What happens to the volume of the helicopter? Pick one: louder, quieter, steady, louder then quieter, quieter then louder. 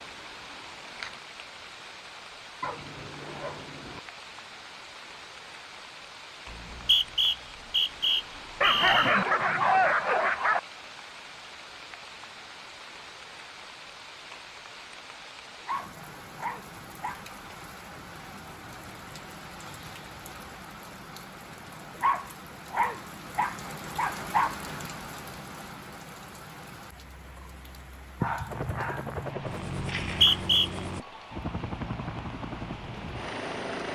steady.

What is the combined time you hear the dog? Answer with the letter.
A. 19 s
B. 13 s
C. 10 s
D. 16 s
C.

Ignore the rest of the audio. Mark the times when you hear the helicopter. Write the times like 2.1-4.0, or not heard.
28.4-33.8.